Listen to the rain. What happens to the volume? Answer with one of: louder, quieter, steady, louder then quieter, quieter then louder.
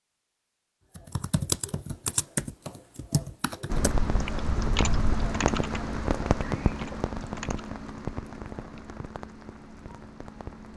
quieter.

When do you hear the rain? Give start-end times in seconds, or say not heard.
3.7-10.7.